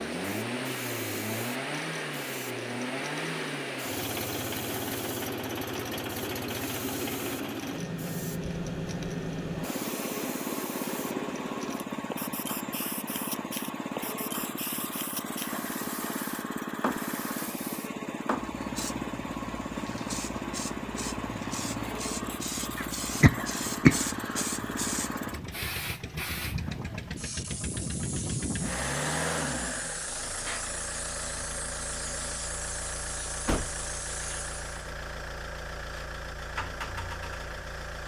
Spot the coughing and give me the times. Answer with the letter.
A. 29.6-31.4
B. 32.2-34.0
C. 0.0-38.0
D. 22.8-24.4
D.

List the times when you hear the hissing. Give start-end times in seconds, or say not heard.
0.0-34.9.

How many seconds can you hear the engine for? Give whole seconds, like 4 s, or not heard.
38 s.